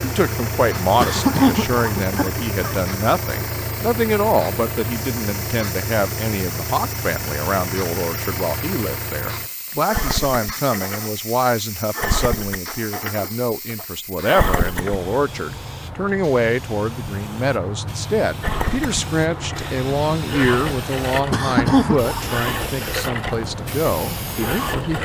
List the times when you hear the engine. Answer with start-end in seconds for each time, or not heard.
0.0-15.1, 18.4-25.0.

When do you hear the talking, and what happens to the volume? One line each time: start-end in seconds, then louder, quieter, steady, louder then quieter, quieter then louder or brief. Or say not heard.
0.0-25.0 steady.